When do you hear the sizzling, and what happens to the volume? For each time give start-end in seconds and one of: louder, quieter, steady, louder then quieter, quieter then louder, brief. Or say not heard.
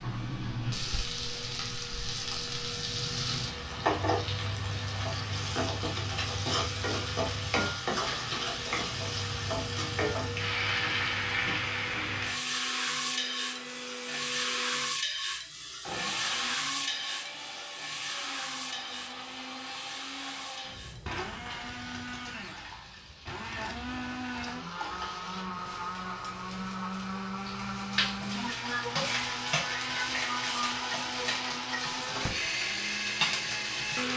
0.0-34.1 quieter then louder.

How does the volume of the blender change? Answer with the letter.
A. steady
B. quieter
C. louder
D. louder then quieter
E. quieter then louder
C.